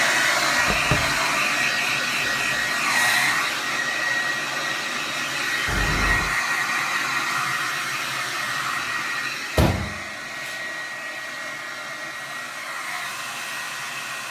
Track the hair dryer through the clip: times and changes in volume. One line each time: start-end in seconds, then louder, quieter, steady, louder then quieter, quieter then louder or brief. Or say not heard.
0.0-14.2 quieter.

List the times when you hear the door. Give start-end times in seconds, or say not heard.
0.6-1.2, 5.7-6.3, 9.6-10.6.